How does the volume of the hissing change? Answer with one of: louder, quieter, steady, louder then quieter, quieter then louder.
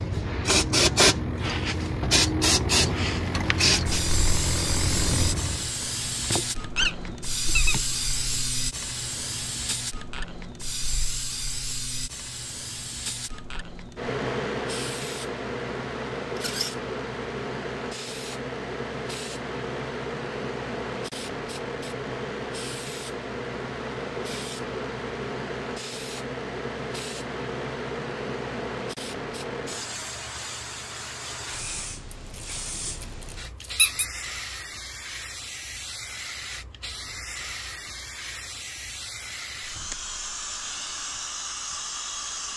quieter.